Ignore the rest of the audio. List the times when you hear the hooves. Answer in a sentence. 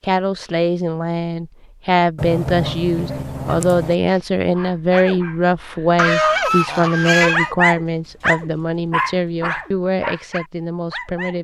You can't hear the hooves here.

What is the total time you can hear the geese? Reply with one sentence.
You can hear the geese for 3 seconds altogether.